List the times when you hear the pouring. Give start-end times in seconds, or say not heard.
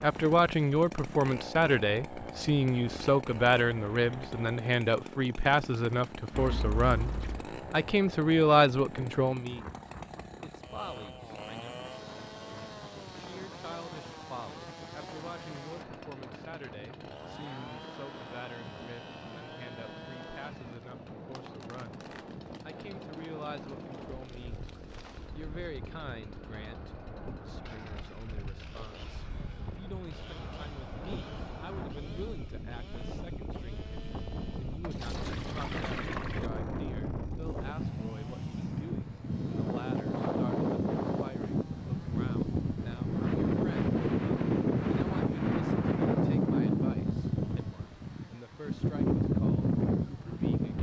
6.3-7.5, 34.8-36.5.